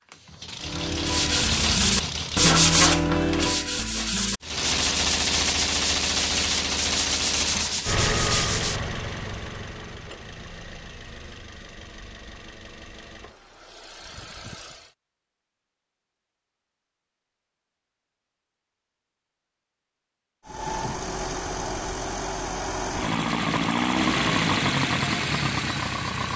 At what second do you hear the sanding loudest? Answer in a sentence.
The loudest moment of the sanding is at 3 seconds.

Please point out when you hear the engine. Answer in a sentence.
You can hear the engine from 0.0 to 2.5 s, from 4.4 to 14.9 s and from 20.4 to 26.3 s.